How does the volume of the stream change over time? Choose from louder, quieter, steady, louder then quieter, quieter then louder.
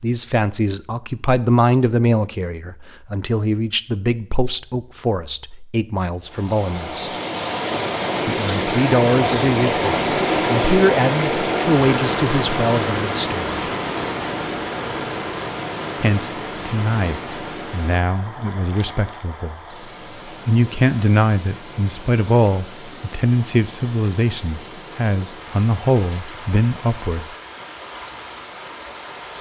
quieter.